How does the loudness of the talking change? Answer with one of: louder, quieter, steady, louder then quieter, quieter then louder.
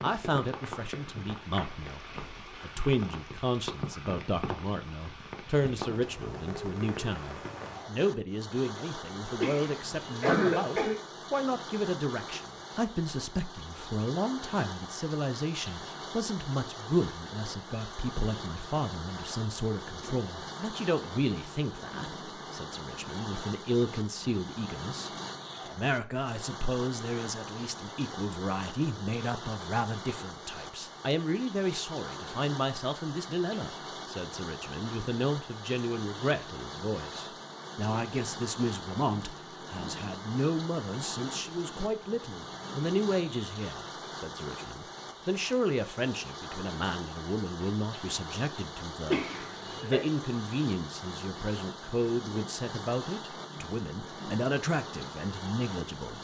steady.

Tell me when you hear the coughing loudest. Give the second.
10 s.